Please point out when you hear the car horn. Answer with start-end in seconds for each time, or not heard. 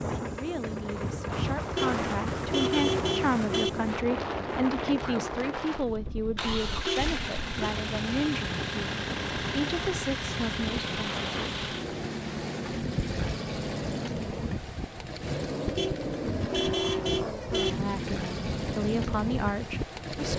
1.8-3.7, 6.8-7.7, 15.8-17.8.